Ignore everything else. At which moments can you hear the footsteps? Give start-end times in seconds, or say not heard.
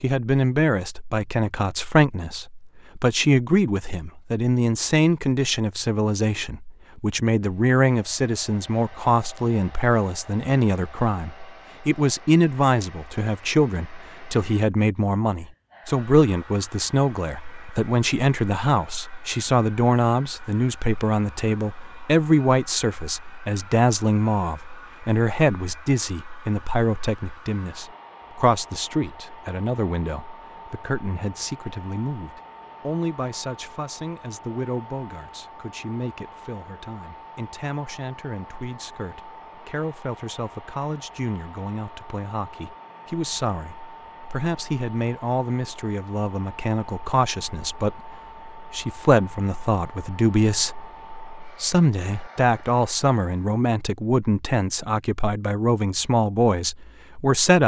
not heard.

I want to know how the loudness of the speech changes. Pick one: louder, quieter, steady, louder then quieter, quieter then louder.
quieter then louder.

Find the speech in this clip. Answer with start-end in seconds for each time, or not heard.
0.0-57.6.